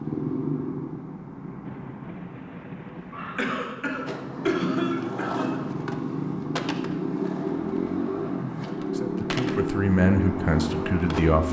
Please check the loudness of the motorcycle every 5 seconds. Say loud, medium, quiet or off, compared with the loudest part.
medium, loud, loud.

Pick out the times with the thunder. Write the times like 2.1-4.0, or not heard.
1.6-3.6.